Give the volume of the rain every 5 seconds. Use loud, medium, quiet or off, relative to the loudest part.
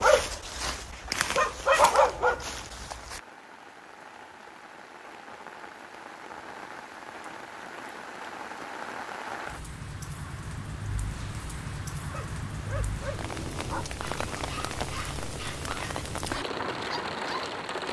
quiet, medium, loud, loud.